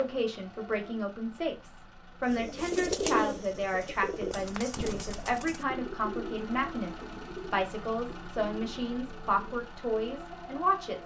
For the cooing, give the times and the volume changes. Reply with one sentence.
You can hear the cooing from 2.2 to 9.7 s, getting quieter.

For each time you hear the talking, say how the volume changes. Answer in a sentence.
You can hear the talking from 0.0 to 11.0 s, at a steady volume.